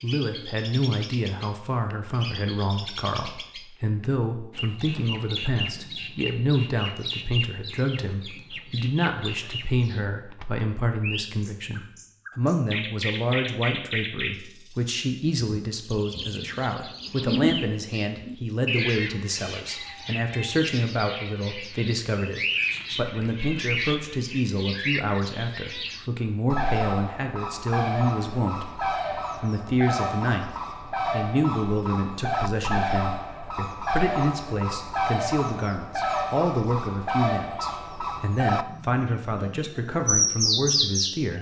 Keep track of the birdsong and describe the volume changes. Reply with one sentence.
The volume of the birdsong goes up.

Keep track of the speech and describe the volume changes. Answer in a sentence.
The loudness of the speech stays about the same.